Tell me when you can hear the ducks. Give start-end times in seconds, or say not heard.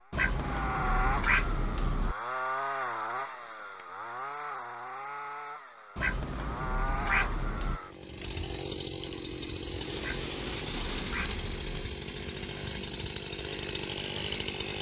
0.1-2.1, 6.0-7.8, 9.9-11.9.